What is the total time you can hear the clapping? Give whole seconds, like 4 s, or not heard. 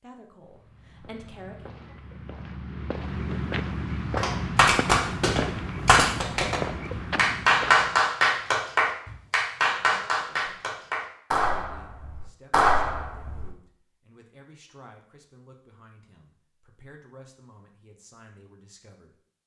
9 s.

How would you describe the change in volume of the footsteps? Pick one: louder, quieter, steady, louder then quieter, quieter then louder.
louder.